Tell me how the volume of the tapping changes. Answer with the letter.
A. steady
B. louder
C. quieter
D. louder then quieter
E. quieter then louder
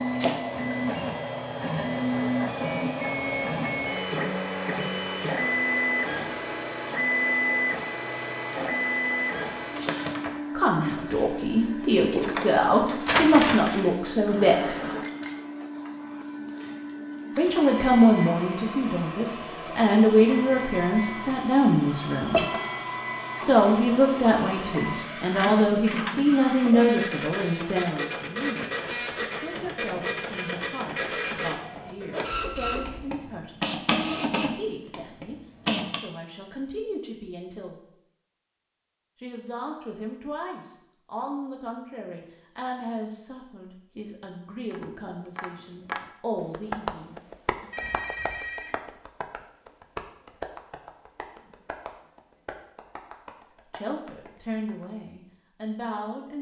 C.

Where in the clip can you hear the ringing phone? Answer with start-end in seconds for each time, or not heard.
21.9-23.0, 47.7-48.8.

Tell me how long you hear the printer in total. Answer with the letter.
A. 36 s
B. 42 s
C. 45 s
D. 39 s
A.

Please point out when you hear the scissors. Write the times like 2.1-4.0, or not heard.
not heard.